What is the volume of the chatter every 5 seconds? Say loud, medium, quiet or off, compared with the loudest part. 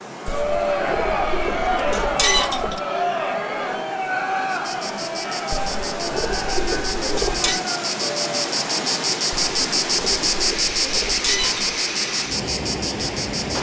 loud, medium, off.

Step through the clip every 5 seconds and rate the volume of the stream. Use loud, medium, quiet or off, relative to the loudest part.
medium, loud, loud.